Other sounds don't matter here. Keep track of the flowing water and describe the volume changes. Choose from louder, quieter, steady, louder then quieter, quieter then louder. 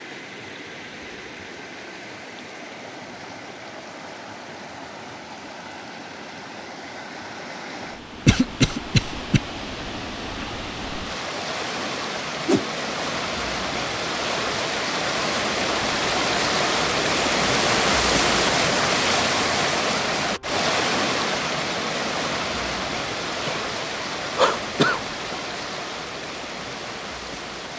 louder then quieter.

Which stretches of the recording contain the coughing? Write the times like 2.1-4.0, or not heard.
8.2-9.4, 23.1-25.4.